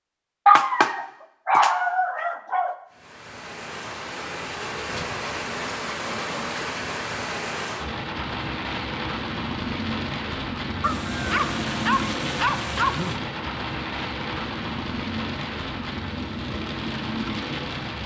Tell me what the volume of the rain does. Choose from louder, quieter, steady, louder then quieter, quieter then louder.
steady.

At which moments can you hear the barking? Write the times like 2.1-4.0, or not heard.
0.5-2.8, 10.8-13.2.